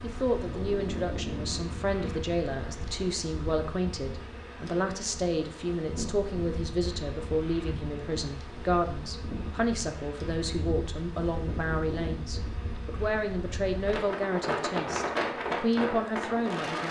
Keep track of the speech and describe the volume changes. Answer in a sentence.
The loudness of the speech stays about the same.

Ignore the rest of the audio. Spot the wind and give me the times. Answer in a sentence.
You can hear the wind from 0.0 to 16.8 s.